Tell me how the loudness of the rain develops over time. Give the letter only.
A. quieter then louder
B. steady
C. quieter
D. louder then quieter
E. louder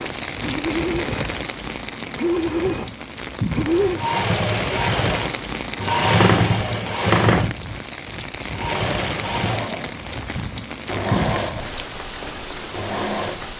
B.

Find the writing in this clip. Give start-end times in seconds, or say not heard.
not heard.